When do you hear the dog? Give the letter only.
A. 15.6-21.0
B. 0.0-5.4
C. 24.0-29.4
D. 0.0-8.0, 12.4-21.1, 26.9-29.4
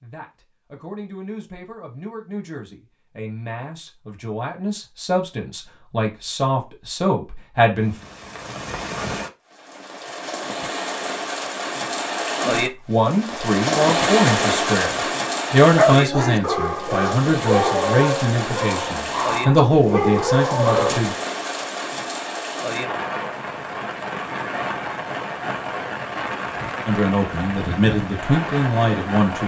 A.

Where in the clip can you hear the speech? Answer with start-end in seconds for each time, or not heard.
0.0-8.0, 12.4-21.1, 26.9-29.4.